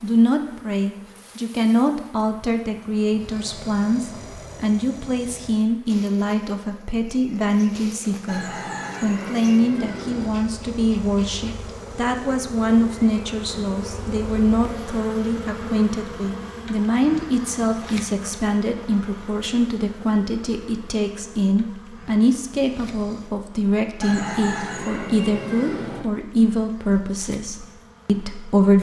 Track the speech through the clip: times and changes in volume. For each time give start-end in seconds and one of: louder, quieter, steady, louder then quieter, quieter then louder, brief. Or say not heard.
0.0-28.7 steady.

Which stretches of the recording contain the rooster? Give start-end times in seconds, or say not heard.
8.2-10.3, 24.0-26.0.